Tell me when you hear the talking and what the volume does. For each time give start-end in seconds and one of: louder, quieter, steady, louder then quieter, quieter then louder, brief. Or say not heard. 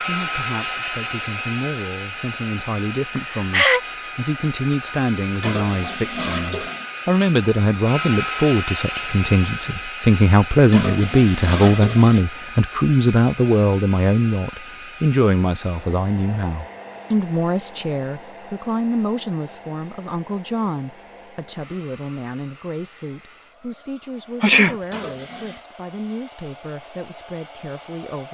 0.0-28.3 louder then quieter.